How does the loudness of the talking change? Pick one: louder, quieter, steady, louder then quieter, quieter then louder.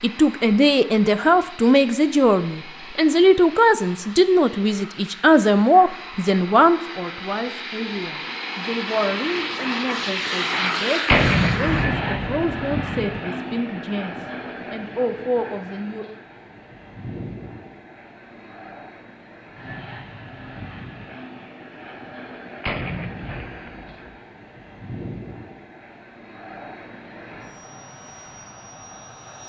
quieter.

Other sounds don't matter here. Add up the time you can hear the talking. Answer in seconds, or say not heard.
16 s.